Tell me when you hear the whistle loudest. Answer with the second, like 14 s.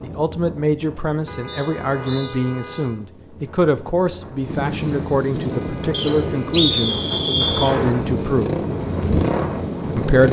7 s.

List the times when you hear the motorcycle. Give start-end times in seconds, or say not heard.
4.5-10.2.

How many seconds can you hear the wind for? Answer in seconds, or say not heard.
10 s.